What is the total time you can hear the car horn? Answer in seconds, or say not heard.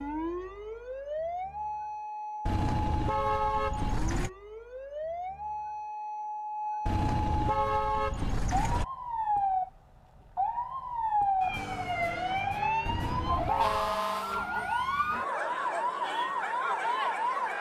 5 s.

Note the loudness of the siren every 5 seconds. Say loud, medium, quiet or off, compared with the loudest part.
medium, loud, loud, loud.